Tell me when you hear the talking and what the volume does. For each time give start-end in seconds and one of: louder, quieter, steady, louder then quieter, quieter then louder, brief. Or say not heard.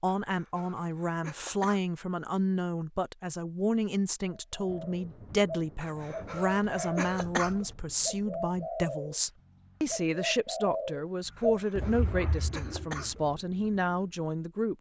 0.0-14.7 steady.